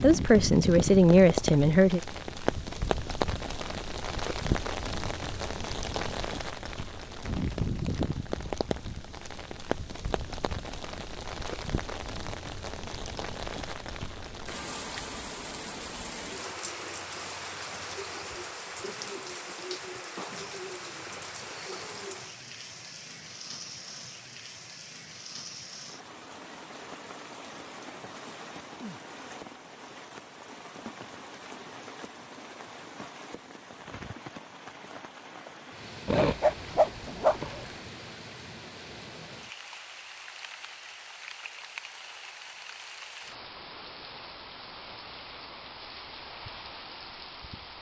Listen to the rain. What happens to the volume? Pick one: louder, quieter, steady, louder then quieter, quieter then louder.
quieter.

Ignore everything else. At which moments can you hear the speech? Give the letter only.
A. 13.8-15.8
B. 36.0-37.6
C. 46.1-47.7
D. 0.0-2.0
D.